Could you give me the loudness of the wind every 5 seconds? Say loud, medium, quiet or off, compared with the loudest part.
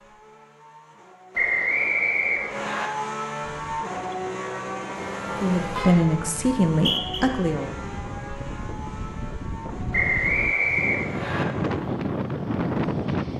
quiet, medium, loud.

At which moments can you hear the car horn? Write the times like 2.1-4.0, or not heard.
5.0-5.9.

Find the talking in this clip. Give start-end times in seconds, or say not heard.
5.4-7.7.